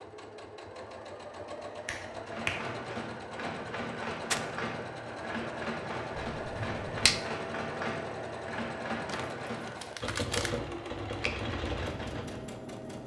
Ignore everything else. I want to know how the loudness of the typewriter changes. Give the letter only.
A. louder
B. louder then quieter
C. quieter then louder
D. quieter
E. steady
E.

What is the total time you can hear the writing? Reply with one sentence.
You can't hear the writing here.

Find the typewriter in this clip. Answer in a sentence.
The typewriter can be heard from 2.0 to 12.4 s.